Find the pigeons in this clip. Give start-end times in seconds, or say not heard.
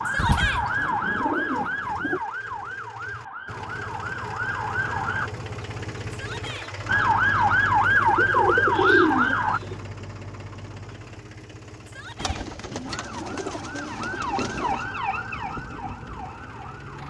0.1-2.2, 7.8-9.8, 12.2-14.9.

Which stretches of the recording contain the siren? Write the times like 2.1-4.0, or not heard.
0.0-5.3, 6.8-9.6, 12.8-17.0.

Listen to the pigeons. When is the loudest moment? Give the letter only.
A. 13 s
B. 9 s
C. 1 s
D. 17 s
B.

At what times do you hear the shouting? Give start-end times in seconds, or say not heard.
0.1-0.7, 6.1-6.7, 11.8-12.4.